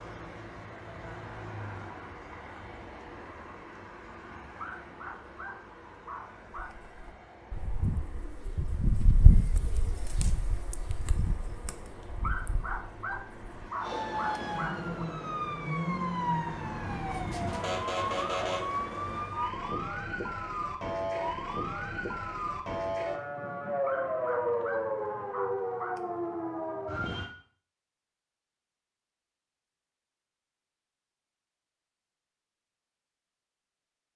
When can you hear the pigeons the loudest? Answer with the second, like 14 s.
9 s.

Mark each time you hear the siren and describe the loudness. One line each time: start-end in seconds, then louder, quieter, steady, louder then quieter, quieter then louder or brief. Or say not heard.
13.8-27.3 steady.